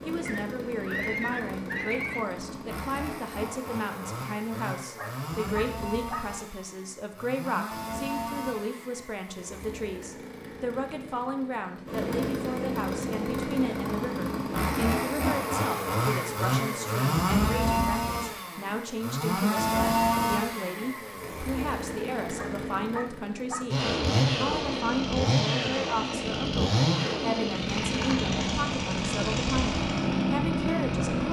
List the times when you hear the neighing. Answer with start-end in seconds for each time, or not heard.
0.2-2.2.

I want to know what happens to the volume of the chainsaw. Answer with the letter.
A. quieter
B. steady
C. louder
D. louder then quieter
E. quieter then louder
C.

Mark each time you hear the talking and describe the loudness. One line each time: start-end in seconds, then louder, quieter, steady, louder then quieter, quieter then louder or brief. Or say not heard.
0.1-31.2 steady.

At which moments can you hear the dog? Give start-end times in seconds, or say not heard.
5.0-6.2, 22.4-23.6.